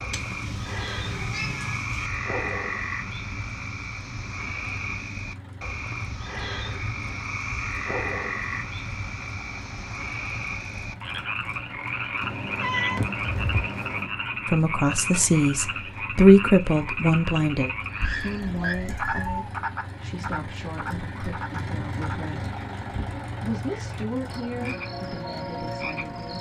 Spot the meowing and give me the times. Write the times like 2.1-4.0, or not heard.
0.1-2.1, 12.2-14.1, 18.0-19.5.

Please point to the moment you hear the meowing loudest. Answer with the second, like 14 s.
13 s.